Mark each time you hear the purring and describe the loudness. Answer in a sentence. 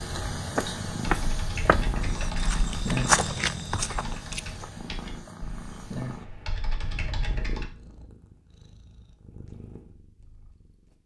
You can hear the purring from 0.0 to 11.0 s, getting quieter.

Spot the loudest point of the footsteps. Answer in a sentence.
The volume of the footsteps peaks at 3 seconds.